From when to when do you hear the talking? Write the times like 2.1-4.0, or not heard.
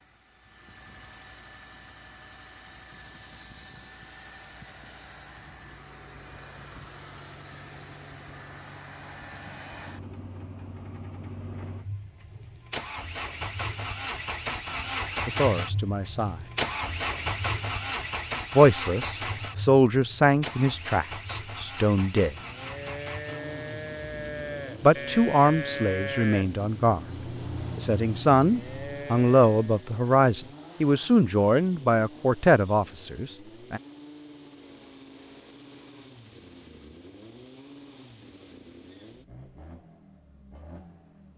15.2-16.4, 18.6-22.4, 24.8-27.0, 27.8-33.8.